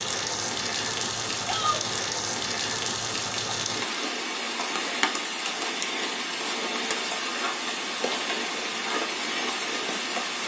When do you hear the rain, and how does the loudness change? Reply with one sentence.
The rain can be heard from 0.0 to 10.4 s, at a steady volume.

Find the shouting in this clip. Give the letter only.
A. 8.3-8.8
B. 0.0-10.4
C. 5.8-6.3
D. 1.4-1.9
D.